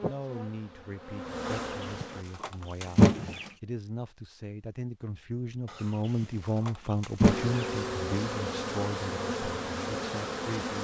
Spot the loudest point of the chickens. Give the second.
3 s.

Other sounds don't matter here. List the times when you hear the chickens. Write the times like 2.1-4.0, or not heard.
1.4-3.5, 5.7-7.7.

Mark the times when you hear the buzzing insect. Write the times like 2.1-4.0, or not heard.
0.0-2.2, 7.2-10.8.